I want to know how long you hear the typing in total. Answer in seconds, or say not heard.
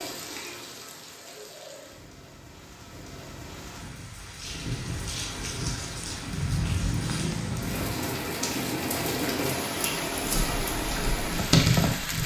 2 s.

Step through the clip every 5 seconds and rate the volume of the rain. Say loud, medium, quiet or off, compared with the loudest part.
medium, loud, loud.